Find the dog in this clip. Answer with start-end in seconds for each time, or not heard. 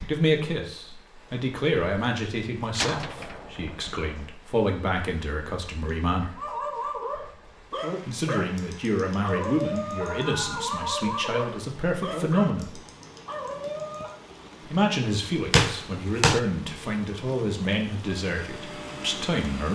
6.3-14.2.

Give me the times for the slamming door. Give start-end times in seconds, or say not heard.
2.8-4.3, 15.5-16.4.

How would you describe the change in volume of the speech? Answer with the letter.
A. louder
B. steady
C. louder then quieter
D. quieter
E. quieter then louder
B.